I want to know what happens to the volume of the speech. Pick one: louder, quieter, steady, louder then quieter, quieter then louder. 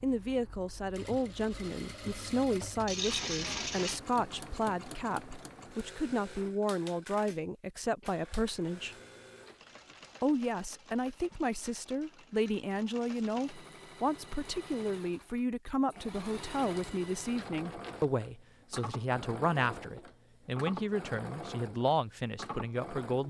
steady.